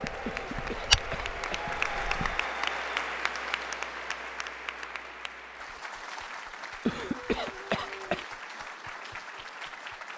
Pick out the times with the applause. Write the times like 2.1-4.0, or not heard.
0.0-10.1.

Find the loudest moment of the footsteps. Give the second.
1 s.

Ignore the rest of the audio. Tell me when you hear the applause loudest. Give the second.
2 s.